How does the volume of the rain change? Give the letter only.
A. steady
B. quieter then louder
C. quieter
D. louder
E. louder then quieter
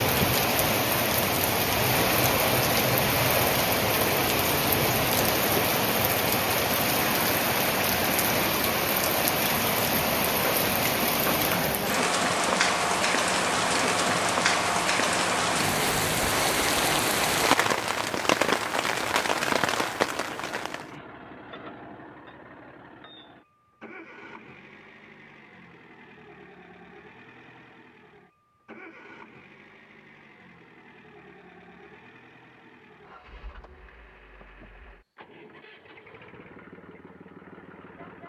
A.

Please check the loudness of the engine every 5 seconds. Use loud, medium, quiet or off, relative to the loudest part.
loud, loud, loud, medium, quiet, quiet, quiet, quiet.